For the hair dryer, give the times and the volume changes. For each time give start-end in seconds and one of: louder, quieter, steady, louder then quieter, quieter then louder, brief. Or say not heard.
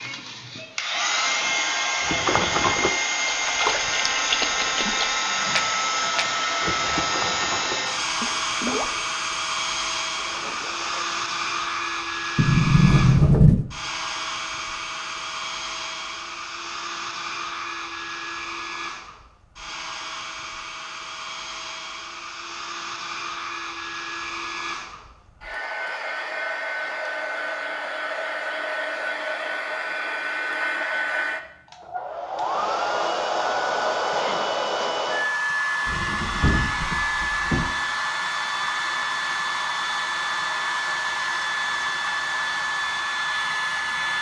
0.0-44.1 quieter then louder.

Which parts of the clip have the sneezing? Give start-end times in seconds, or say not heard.
not heard.